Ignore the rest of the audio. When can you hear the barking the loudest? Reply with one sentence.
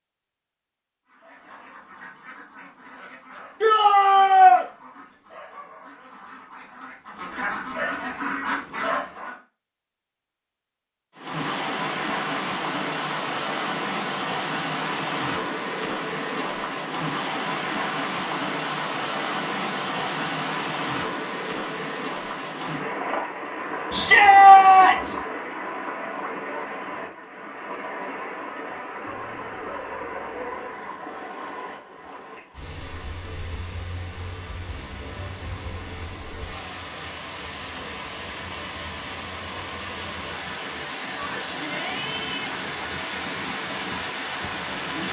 The loudest moment of the barking is at 30 seconds.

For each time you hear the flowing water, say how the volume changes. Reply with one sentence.
You can hear the flowing water from 11.2 to 45.0 s, getting quieter then louder.